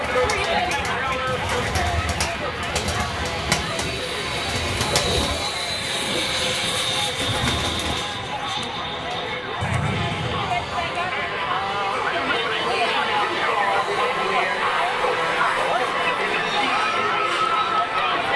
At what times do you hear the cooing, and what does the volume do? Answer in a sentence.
The cooing can be heard from 0.0 to 11.1 s, at a steady volume.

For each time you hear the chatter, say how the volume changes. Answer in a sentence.
The chatter can be heard from 0.0 to 18.3 s, getting quieter then louder.